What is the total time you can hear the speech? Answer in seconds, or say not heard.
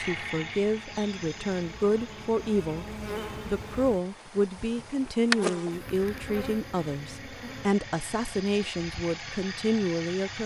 10 s.